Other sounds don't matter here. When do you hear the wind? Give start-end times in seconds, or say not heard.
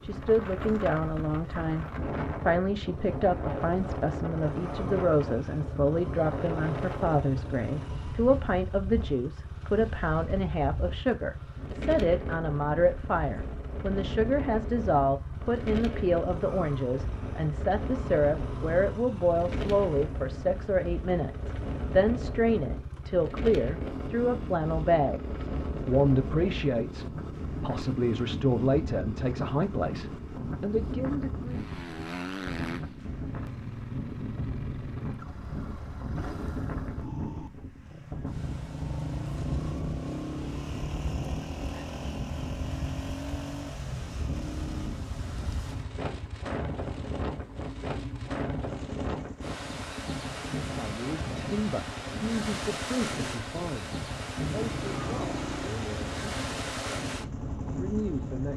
0.0-58.5.